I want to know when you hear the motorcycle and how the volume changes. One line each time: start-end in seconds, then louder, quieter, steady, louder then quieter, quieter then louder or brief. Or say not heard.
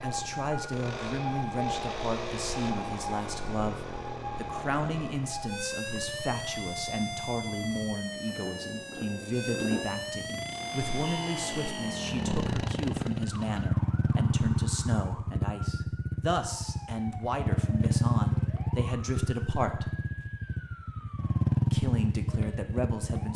0.0-23.3 quieter then louder.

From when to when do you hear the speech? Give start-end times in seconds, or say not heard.
0.0-19.9, 21.7-23.3.